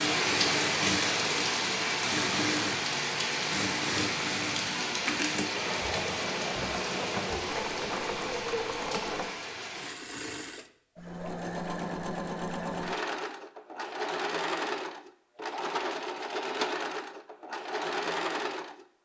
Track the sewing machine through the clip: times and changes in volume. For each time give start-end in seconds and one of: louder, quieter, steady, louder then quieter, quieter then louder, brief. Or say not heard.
0.0-18.9 steady.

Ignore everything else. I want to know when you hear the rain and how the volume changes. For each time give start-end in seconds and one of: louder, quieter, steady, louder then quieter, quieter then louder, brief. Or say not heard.
0.0-9.9 quieter.